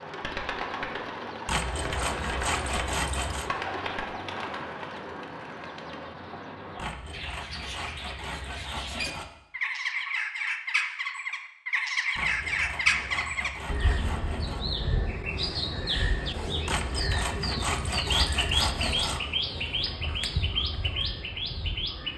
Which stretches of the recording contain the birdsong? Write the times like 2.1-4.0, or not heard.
0.0-22.1.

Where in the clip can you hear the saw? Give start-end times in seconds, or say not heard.
1.4-3.5, 6.8-9.2, 12.2-14.7, 16.6-19.2.